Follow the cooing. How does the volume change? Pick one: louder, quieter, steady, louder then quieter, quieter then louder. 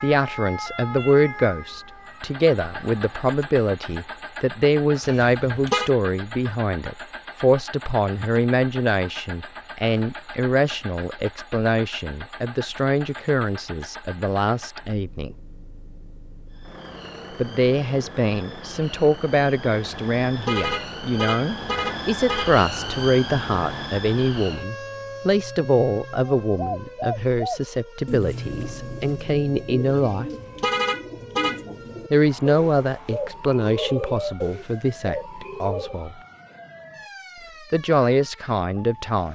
quieter then louder.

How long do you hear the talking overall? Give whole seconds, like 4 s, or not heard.
34 s.